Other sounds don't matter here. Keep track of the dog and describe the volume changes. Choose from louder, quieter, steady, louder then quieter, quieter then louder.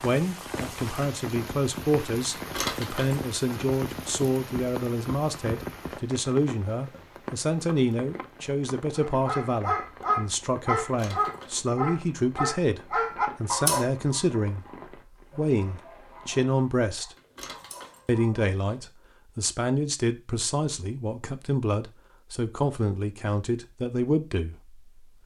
quieter.